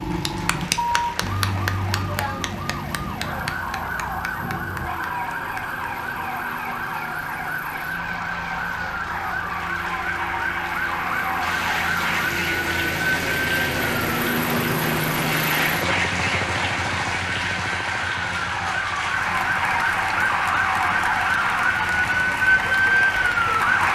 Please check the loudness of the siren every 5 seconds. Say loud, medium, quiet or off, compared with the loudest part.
medium, medium, medium, medium, loud.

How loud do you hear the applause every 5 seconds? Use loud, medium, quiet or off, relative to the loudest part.
medium, medium, loud, loud, loud.